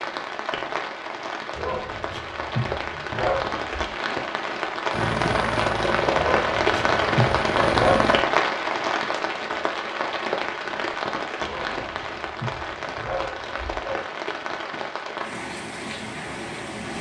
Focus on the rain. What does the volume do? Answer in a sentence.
The volume of the rain goes up, then down.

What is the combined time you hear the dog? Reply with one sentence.
The dog can be heard for 7 seconds in total.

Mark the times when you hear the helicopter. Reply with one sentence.
You can hear the helicopter from 4.9 to 8.2 s.